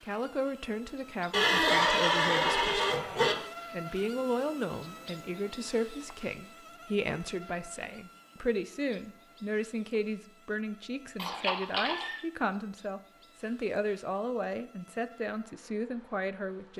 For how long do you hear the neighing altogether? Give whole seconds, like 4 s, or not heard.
3 s.